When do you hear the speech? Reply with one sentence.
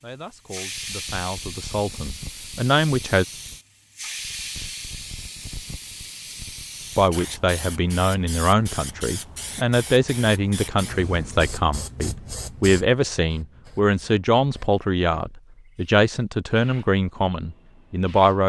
You can hear the speech from 0.0 to 3.2 s and from 7.0 to 18.4 s.